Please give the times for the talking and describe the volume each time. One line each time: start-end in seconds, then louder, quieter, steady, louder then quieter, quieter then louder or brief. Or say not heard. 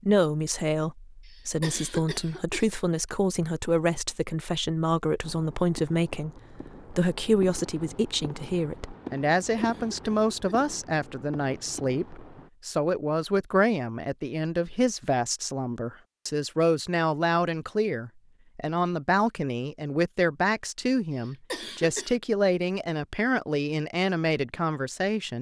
0.0-25.3 steady.